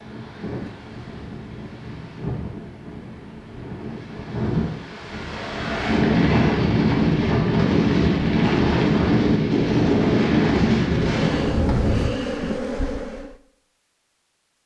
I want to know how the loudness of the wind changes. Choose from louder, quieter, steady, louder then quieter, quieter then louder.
louder.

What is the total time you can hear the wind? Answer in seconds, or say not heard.
12 s.